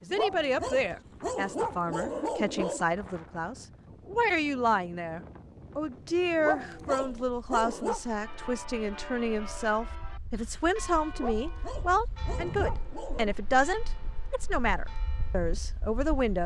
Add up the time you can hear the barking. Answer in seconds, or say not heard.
7 s.